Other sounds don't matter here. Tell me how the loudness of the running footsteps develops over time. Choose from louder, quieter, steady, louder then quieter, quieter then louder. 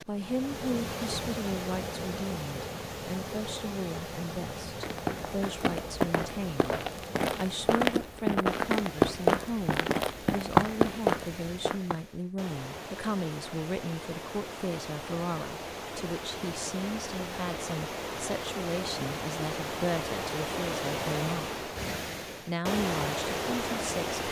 louder.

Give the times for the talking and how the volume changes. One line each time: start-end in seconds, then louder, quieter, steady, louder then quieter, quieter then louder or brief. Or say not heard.
0.0-24.2 steady.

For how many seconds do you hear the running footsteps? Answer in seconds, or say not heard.
7 s.